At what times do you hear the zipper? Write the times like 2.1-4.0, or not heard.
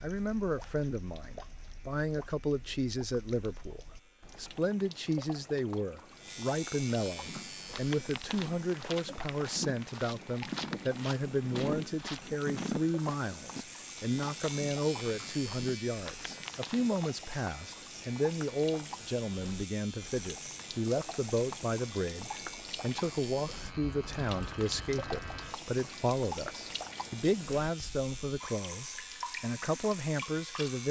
not heard.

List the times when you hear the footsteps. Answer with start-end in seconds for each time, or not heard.
7.2-17.1.